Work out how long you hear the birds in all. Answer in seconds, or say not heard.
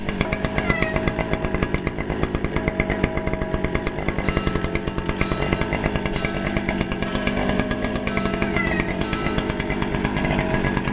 not heard.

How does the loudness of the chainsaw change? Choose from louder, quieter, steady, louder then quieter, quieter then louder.
steady.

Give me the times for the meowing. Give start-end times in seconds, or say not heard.
0.5-1.1, 8.4-8.9.